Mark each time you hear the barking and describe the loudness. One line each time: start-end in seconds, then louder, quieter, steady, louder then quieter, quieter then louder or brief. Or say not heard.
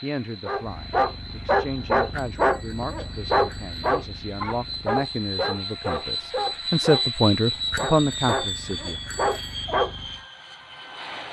0.5-10.2 quieter.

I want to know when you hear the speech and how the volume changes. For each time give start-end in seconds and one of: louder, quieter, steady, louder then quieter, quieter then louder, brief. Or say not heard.
0.0-9.0 louder.